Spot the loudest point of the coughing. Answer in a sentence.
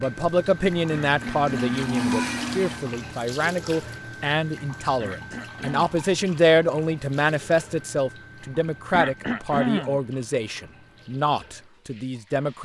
The volume of the coughing peaks at 10 seconds.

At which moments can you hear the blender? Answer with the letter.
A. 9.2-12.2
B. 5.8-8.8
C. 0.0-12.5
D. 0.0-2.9
D.